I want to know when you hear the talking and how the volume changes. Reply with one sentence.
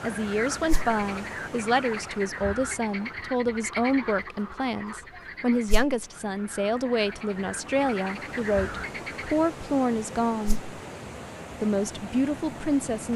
You can hear the talking from 0.0 to 10.6 s, at a steady volume; and briefly from 11.6 to 13.1 s.